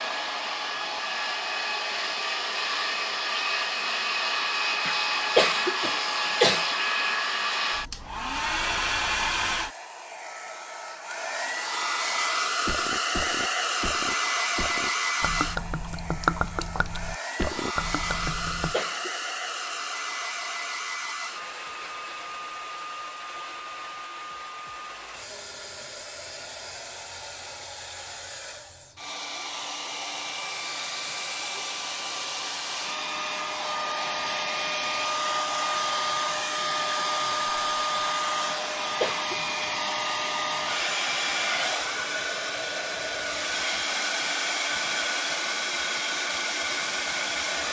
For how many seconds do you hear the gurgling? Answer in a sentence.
The gurgling can be heard for 6 seconds in total.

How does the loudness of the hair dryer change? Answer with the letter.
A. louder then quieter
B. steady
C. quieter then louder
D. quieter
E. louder
C.